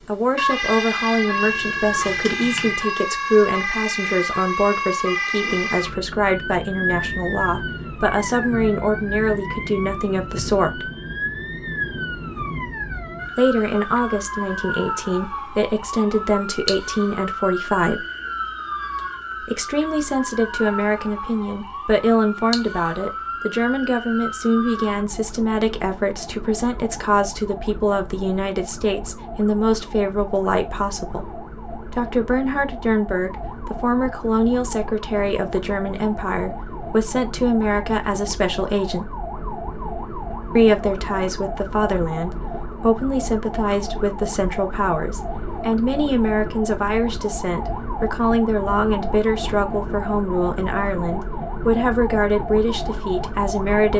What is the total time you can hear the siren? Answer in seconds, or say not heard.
54 s.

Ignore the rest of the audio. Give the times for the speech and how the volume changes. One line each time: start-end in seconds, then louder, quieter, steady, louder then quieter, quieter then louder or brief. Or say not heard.
0.1-10.9 steady
13.3-18.1 steady
19.4-39.1 steady
40.5-53.9 steady.